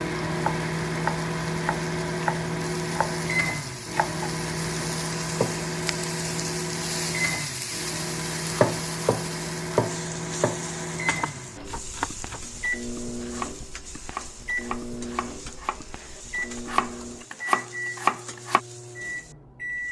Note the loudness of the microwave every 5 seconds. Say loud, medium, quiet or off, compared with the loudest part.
loud, loud, medium, medium.